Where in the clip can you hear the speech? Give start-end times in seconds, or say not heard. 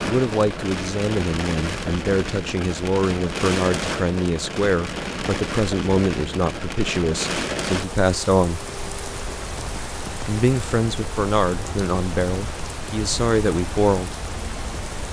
0.0-8.6, 10.2-14.2.